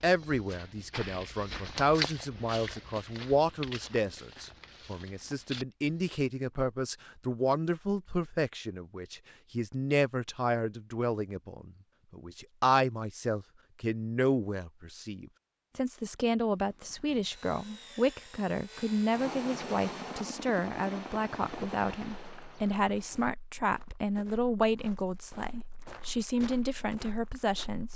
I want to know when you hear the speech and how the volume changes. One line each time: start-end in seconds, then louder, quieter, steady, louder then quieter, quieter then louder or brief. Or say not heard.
0.0-27.9 steady.